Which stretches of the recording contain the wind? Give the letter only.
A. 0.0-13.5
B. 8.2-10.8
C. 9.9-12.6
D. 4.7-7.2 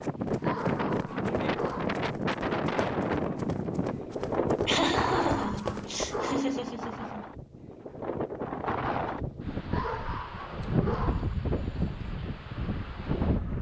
A.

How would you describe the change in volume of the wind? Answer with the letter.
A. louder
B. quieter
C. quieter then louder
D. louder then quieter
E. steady
C.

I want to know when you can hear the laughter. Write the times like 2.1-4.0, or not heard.
4.7-7.2.